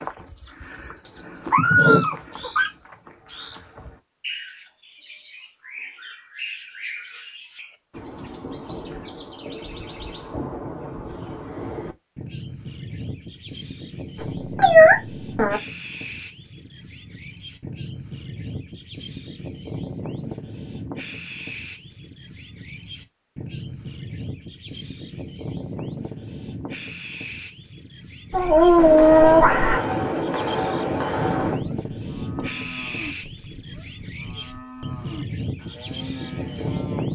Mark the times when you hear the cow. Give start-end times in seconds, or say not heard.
31.6-37.0.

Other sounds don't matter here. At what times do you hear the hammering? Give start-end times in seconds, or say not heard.
28.8-31.6.